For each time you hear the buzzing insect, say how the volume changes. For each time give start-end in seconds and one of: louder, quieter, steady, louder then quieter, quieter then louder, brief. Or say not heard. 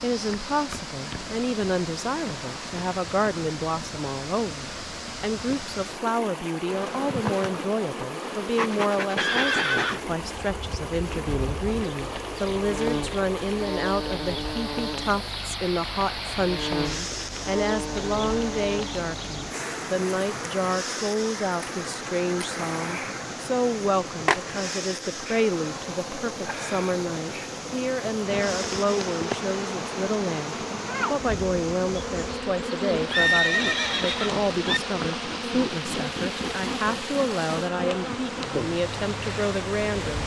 6.7-40.2 steady.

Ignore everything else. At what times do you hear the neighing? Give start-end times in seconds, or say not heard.
9.2-10.0, 33.1-34.8.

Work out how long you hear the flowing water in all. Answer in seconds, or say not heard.
40 s.